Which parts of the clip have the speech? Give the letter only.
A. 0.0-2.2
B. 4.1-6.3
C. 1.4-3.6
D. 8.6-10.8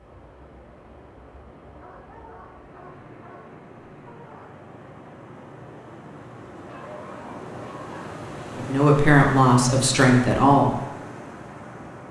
D.